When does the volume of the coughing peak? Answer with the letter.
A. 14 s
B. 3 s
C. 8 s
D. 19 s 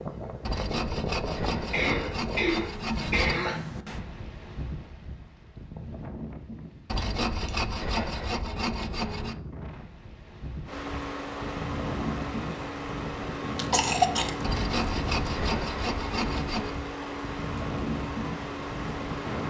A.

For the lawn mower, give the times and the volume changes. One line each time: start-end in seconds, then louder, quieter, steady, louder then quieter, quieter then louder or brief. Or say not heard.
10.7-19.4 steady.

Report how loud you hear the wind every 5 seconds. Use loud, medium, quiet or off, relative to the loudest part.
loud, medium, loud, loud.